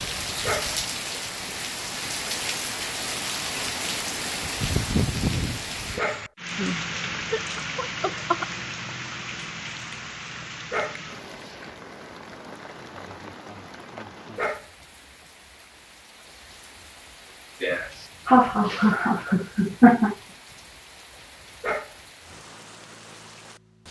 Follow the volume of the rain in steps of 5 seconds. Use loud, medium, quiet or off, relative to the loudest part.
loud, loud, medium, quiet, quiet.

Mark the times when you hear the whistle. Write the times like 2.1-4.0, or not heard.
not heard.